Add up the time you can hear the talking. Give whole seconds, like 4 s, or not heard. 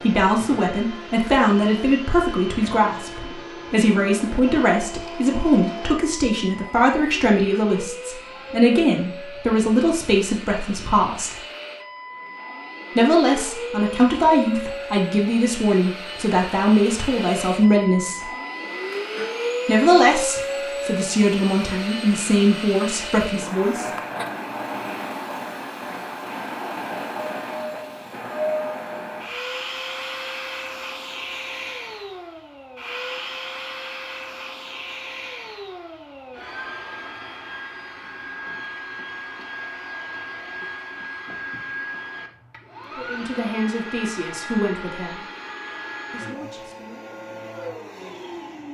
24 s.